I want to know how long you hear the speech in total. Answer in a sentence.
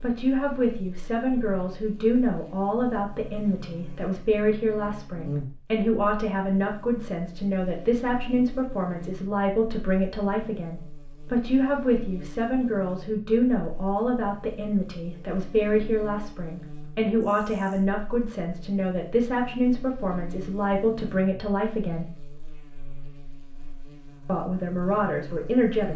You can hear the speech for 24 seconds altogether.